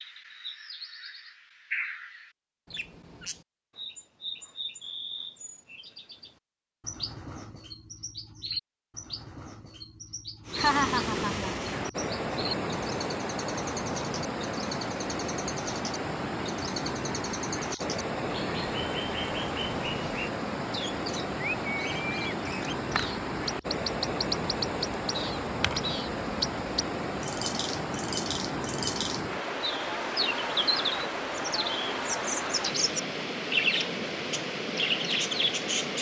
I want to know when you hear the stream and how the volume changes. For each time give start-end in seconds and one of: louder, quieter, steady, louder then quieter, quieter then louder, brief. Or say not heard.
10.4-35.9 steady.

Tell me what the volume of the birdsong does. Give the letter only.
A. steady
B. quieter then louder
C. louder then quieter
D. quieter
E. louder
E.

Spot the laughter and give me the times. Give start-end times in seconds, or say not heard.
10.6-11.6.